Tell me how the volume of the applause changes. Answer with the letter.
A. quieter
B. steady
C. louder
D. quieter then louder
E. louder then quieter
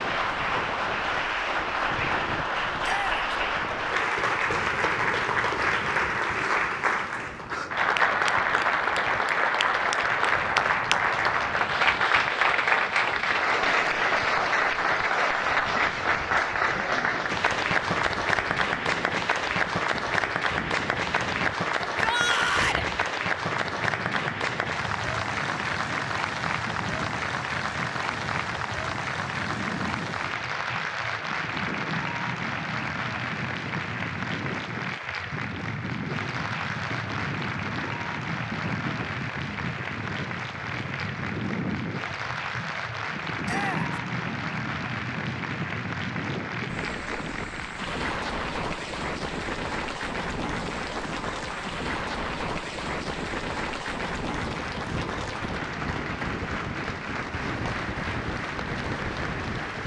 A.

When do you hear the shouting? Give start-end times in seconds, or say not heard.
2.8-3.2, 21.9-22.9, 43.5-43.9.